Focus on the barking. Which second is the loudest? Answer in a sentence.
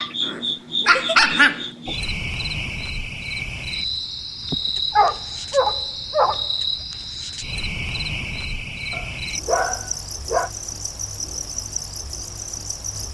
The volume of the barking peaks at 1 second.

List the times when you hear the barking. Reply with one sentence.
You can hear the barking from 0.2 to 1.6 s, from 4.5 to 6.5 s and from 8.9 to 10.5 s.